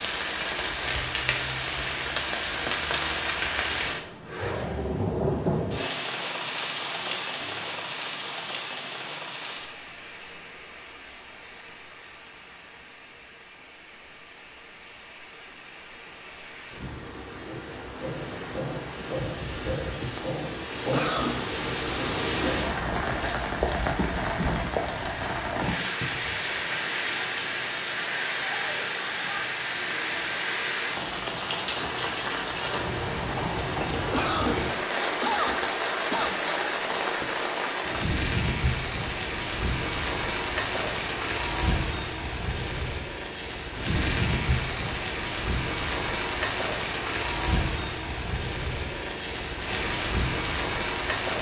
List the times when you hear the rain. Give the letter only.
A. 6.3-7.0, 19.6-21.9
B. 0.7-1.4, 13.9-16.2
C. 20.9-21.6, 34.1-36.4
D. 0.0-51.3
D.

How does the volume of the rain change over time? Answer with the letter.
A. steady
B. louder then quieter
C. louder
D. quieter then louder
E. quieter
D.